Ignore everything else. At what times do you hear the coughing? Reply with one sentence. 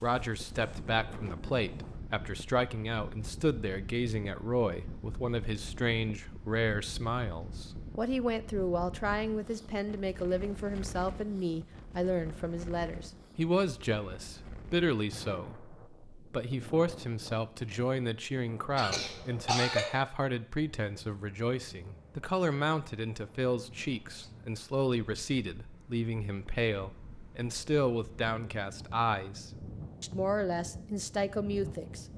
You can hear the coughing from 18.8 to 19.9 s.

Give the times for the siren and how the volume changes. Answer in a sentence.
The siren can't be heard in this clip.